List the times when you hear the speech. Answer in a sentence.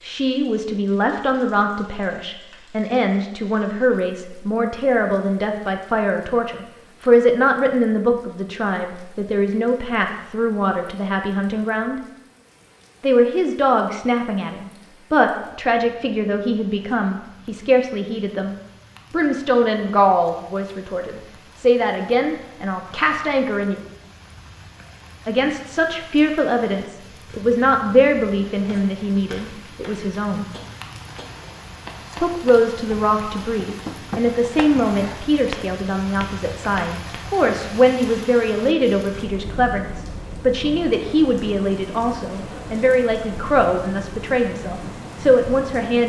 You can hear the speech from 0.0 to 12.0 s, from 13.0 to 23.8 s, from 25.2 to 30.4 s and from 32.2 to 46.0 s.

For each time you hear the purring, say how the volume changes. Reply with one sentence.
You can't hear the purring here.